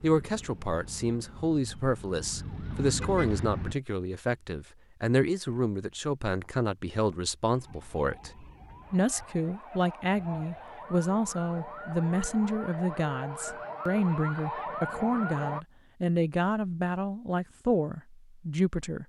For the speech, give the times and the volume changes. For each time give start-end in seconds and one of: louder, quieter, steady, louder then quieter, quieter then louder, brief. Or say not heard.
0.0-19.0 steady.